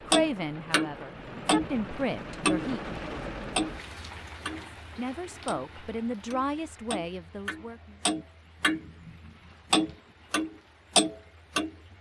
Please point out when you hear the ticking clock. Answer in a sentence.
You can hear the ticking clock from 0.1 to 4.8 s, from 5.5 to 9.1 s and from 9.7 to 11.7 s.